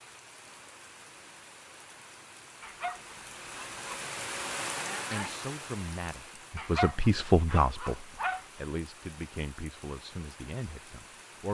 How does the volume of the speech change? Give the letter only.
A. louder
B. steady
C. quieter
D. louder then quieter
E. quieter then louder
D.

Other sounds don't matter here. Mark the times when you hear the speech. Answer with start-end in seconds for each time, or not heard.
5.1-11.5.